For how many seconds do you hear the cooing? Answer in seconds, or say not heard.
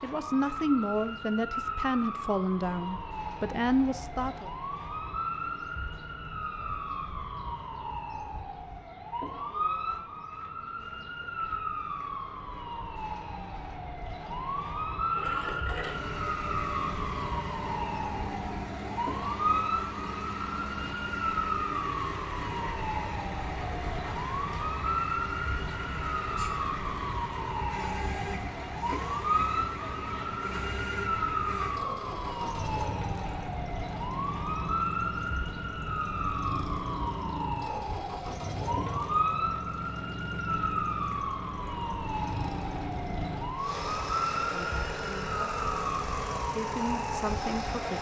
not heard.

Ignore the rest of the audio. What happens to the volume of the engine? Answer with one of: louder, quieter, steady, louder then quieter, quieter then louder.
steady.